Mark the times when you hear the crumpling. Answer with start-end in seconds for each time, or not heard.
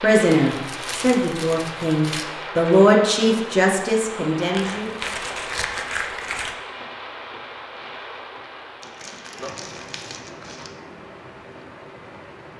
0.3-2.2, 4.5-6.5, 8.8-10.7.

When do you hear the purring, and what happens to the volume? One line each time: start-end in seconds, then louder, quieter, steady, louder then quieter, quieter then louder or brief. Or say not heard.
not heard.